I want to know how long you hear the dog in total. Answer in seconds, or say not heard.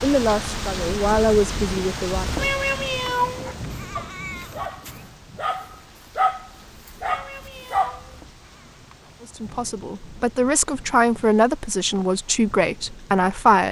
5 s.